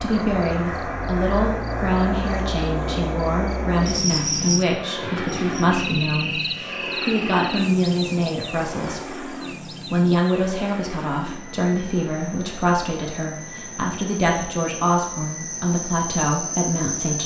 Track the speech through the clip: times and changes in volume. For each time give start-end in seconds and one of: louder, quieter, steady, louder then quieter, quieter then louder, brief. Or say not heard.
0.0-17.2 steady.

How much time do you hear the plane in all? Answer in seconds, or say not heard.
17 s.